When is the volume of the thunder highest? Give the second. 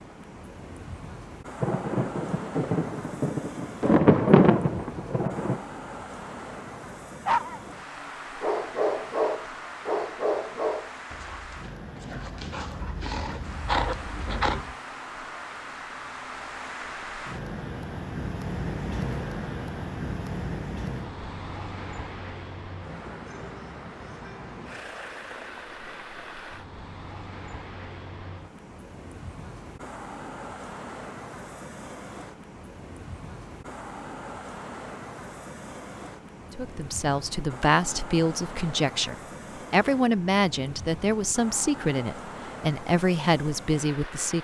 4 s.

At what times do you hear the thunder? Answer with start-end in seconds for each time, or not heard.
1.6-5.6.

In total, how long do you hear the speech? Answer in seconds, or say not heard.
8 s.